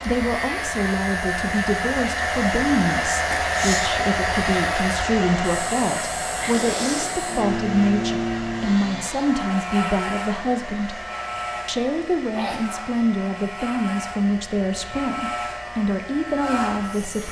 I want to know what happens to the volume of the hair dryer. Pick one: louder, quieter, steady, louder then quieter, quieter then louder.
quieter.